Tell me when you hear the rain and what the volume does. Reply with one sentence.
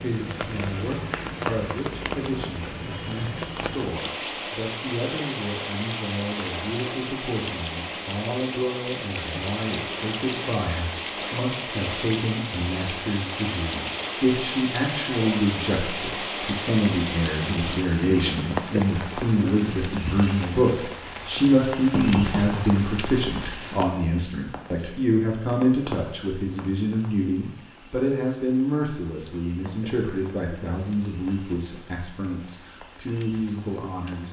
The rain can be heard from 0.0 to 34.2 s, getting quieter.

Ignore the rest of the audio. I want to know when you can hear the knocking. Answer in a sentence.
You can hear the knocking from 21.9 to 22.6 s.